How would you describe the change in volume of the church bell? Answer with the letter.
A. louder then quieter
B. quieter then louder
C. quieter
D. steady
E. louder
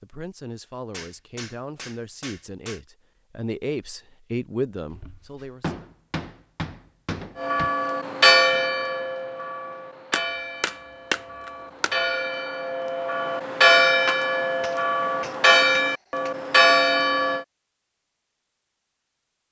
B.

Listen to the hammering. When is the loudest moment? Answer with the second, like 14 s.
11 s.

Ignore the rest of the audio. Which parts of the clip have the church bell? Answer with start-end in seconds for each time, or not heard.
7.3-17.4.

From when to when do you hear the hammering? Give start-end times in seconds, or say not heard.
0.9-2.8, 4.9-7.8, 10.1-11.9, 14.6-16.3.